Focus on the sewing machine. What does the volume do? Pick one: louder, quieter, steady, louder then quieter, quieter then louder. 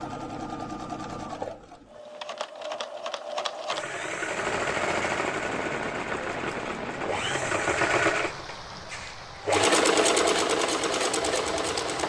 louder.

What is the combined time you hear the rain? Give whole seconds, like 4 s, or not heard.
8 s.